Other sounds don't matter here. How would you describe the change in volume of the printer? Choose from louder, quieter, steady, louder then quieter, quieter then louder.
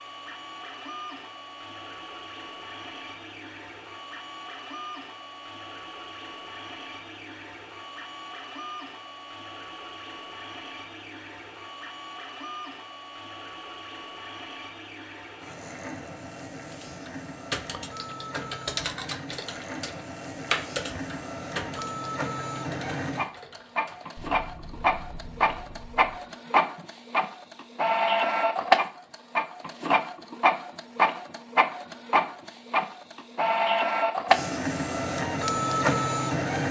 louder.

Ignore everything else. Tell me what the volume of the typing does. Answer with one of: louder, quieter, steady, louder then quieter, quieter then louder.
quieter.